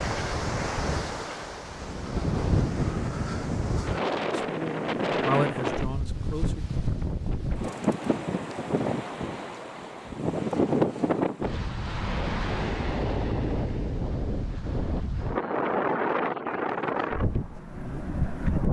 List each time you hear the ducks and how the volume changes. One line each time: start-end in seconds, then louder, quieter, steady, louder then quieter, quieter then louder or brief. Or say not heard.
not heard.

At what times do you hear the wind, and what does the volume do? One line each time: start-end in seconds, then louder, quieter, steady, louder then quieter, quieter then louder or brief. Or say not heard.
0.0-18.6 steady.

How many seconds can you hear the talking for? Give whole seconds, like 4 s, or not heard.
2 s.